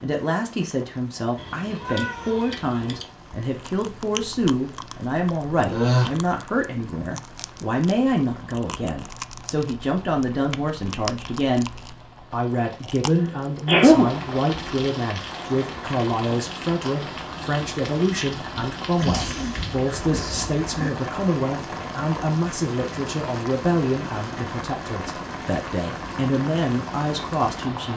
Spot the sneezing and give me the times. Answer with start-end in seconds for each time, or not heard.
5.6-6.1, 13.1-14.2, 18.9-20.9.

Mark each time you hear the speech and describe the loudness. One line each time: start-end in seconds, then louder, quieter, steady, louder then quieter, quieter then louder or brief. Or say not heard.
0.0-27.9 steady.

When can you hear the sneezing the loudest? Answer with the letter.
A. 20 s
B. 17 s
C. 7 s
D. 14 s
D.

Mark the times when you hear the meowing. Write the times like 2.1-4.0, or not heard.
1.4-3.1.